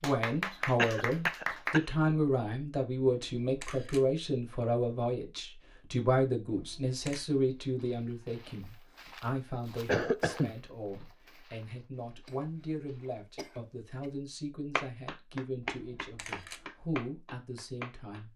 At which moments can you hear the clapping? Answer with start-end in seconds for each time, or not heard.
0.0-1.8, 14.8-18.2.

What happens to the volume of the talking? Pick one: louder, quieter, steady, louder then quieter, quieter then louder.
quieter.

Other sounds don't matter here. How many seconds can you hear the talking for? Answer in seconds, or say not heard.
18 s.